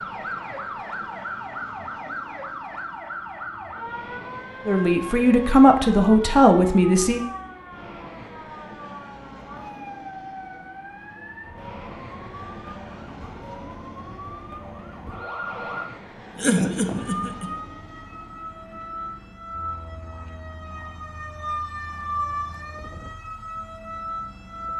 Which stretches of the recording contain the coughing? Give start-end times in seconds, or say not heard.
16.4-17.5.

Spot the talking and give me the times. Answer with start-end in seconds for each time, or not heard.
4.7-7.2.